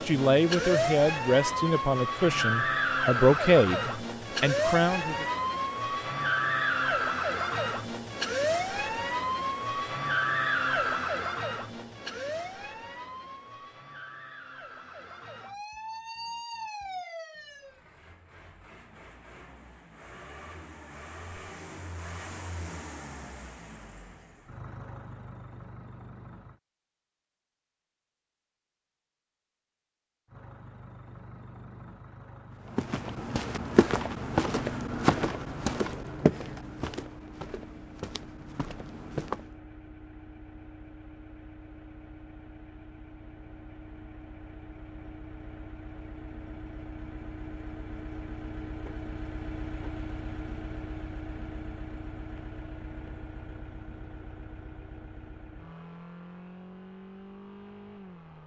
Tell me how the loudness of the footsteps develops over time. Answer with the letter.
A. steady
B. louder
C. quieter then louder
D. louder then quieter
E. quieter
E.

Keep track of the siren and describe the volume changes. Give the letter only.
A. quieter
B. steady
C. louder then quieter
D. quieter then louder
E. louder
A.